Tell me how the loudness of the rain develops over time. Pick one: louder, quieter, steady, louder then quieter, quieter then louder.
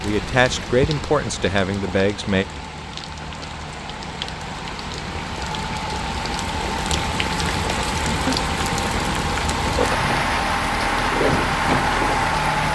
louder.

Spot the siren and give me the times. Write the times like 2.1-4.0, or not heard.
not heard.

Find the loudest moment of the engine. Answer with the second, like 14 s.
12 s.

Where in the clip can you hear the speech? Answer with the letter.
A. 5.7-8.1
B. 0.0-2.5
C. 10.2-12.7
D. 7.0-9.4
B.